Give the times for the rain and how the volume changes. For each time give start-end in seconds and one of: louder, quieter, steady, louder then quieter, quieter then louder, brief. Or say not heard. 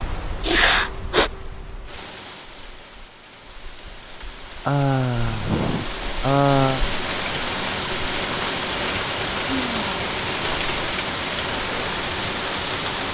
0.0-13.0 louder.